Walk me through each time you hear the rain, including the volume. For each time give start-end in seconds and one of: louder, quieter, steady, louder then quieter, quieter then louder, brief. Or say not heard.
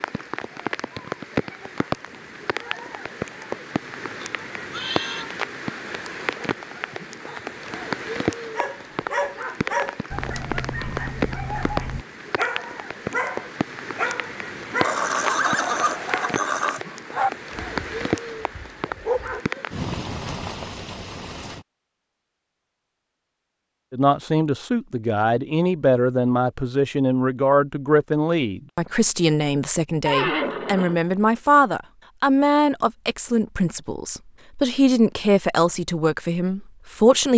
0.0-21.6 steady.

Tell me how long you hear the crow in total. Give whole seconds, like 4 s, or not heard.
not heard.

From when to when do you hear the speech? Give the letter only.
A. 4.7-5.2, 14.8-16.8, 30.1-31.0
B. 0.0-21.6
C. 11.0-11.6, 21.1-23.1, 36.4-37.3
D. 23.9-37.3
D.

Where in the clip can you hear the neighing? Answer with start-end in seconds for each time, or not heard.
4.7-5.2, 14.8-16.8, 30.1-31.0.